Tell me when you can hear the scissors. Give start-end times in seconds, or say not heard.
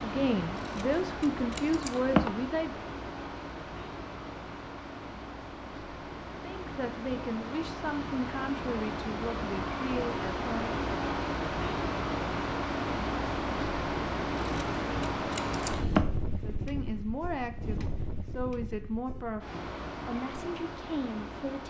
0.6-2.3, 14.3-16.1.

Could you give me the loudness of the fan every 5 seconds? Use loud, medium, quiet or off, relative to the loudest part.
medium, medium, loud, medium, medium.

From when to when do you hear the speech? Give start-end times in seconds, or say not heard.
0.0-2.8, 6.4-10.8, 16.4-21.6.